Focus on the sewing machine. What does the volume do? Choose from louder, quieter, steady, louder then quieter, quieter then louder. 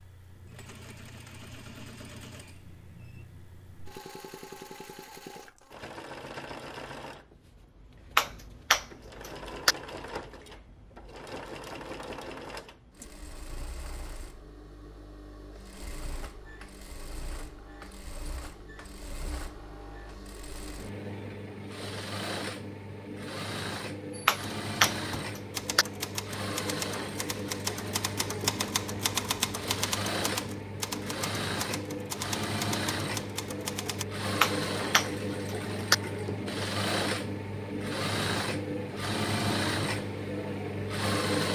louder.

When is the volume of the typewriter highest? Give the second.
29 s.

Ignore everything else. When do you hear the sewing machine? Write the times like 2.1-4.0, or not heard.
0.0-41.5.